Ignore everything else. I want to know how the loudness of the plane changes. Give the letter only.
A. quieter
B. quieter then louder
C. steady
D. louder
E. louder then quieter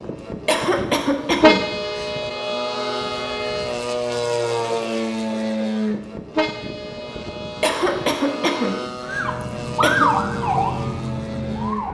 E.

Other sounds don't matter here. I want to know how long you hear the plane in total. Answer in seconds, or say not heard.
12 s.